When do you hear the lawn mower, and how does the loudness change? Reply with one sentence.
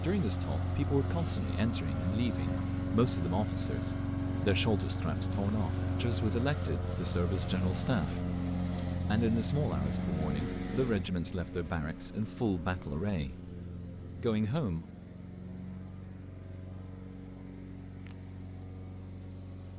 The lawn mower can be heard from 0.0 to 19.7 s, getting quieter.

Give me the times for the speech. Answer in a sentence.
The speech can be heard from 0.0 to 8.3 s, from 9.1 to 13.5 s and from 14.2 to 14.8 s.